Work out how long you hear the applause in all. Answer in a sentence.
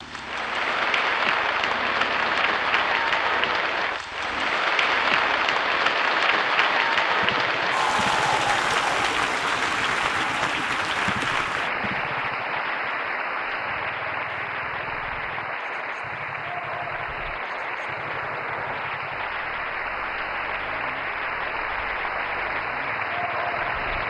The applause can be heard for 24 seconds in total.